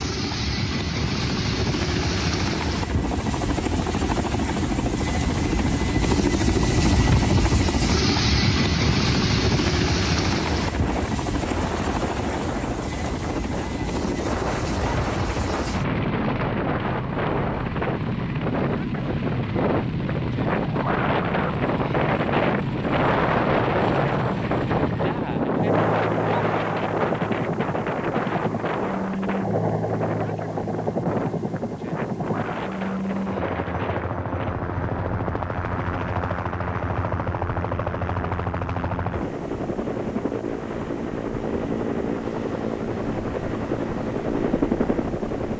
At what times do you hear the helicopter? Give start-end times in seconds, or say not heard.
0.0-45.5.